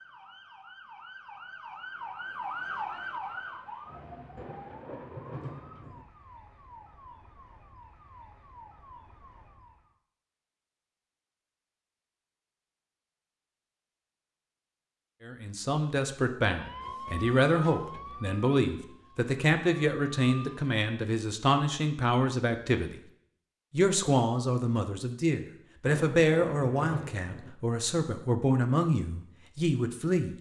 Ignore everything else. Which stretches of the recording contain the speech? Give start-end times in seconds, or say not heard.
15.2-22.9, 23.7-30.3.